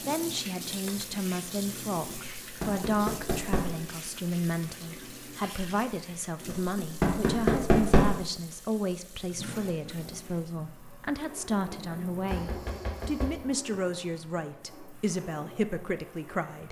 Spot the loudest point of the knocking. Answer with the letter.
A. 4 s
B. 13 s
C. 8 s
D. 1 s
C.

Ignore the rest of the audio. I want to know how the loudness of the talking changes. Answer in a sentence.
The loudness of the talking stays about the same.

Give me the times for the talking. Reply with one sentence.
The talking can be heard from 0.0 to 16.6 s.